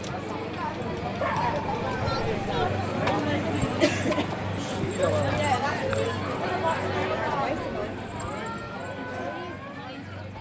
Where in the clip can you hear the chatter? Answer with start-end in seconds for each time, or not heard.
0.0-10.3.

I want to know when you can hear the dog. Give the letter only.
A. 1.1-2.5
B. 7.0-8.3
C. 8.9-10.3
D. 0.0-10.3
A.